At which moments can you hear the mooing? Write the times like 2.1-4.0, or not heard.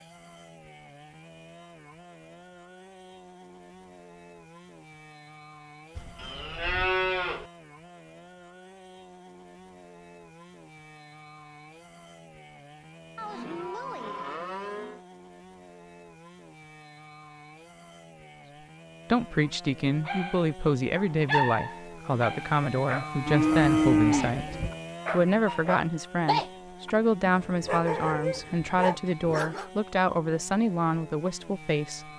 6.0-7.5, 13.2-15.0, 23.2-24.8.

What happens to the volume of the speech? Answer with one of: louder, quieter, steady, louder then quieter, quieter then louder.
steady.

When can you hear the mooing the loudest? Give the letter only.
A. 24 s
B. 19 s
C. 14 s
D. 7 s
A.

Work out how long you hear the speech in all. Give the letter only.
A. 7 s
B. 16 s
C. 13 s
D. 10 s
C.